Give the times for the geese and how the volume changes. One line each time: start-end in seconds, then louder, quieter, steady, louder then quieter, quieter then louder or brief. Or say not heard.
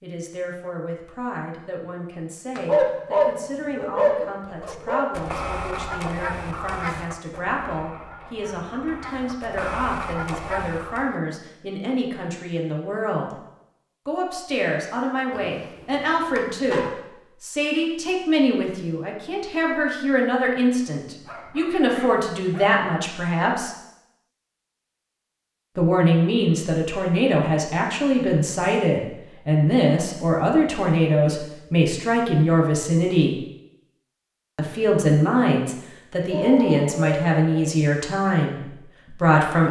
4.5-11.2 quieter then louder.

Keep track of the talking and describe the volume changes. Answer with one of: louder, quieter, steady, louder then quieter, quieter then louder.
louder.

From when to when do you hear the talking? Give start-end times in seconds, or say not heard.
0.0-13.3, 14.1-23.8, 25.8-33.4, 34.5-39.6.